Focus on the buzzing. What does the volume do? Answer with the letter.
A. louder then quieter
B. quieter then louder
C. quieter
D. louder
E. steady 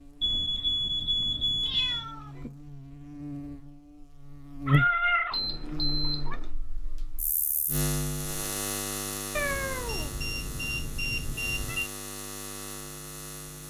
A.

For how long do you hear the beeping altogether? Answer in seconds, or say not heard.
5 s.